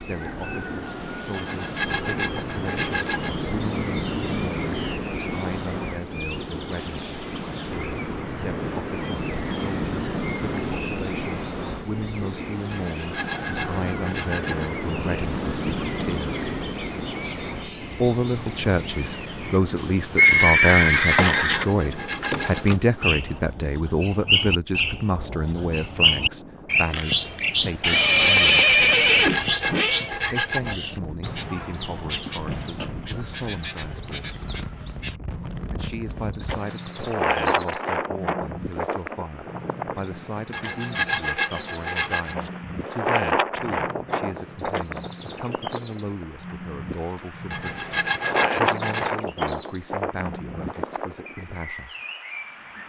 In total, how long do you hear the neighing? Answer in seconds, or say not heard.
4 s.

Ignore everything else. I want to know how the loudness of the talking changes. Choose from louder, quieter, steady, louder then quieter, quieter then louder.
louder then quieter.